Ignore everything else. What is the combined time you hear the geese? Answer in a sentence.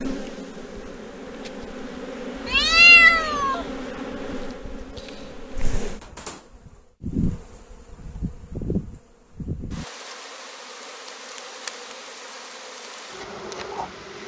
You can't hear the geese here.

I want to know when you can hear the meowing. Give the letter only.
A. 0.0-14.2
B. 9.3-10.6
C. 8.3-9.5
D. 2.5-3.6
D.